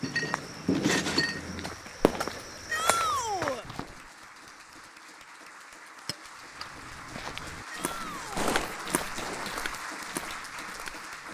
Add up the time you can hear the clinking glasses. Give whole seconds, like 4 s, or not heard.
2 s.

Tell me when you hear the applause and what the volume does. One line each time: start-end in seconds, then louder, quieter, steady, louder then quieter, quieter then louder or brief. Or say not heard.
0.0-11.2 louder.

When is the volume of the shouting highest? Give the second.
3 s.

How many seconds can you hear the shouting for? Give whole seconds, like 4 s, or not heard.
2 s.